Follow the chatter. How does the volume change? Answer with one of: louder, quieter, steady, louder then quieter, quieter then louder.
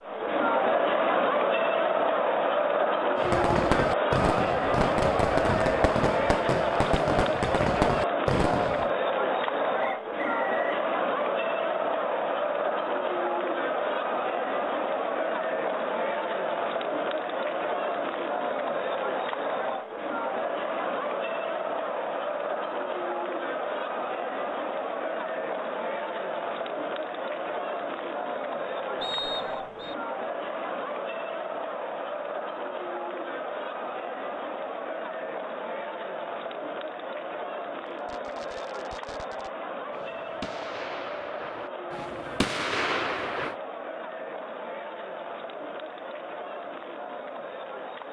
quieter.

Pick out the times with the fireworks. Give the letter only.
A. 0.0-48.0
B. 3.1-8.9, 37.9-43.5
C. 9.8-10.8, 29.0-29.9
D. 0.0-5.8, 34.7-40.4
B.